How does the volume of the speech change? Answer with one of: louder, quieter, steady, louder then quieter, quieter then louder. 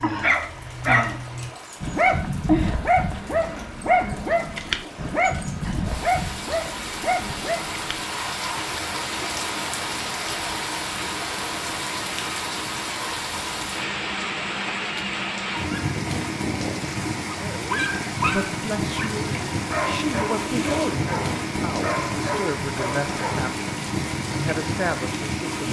steady.